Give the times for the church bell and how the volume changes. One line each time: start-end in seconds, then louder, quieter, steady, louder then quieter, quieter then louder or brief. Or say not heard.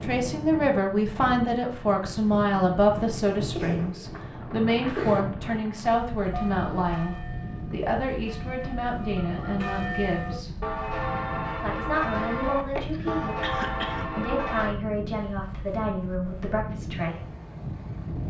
6.3-14.8 louder.